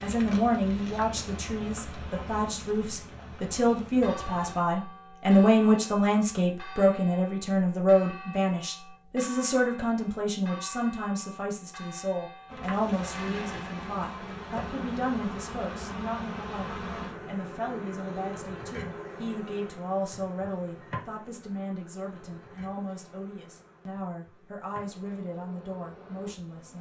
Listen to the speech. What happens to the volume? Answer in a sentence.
The volume of the speech goes down.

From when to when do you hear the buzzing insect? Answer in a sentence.
You can hear the buzzing insect from 0.0 to 4.5 s and from 12.4 to 26.7 s.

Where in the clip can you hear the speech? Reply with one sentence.
You can hear the speech from 0.0 to 26.7 s.